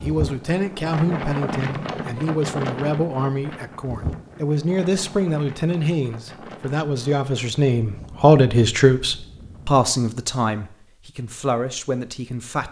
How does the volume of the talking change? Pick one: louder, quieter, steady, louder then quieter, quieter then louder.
louder then quieter.